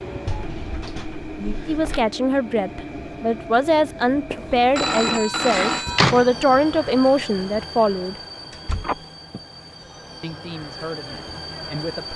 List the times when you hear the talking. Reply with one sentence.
The talking can be heard from 1.6 to 8.2 s and from 10.2 to 12.1 s.